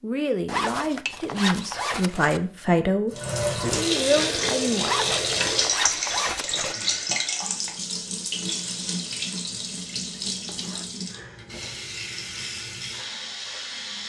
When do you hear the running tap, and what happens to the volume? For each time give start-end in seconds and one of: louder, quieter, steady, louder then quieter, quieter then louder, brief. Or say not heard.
3.1-14.0 quieter.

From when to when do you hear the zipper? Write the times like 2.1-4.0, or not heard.
0.5-2.4, 4.8-6.8, 10.2-10.8.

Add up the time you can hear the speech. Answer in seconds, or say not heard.
5 s.